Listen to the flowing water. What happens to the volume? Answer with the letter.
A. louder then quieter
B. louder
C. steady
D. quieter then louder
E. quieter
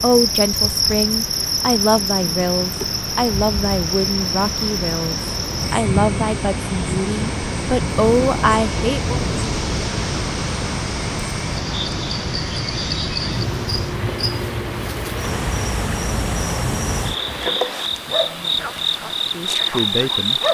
A.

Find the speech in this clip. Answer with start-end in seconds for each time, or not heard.
0.0-9.2, 18.2-20.4.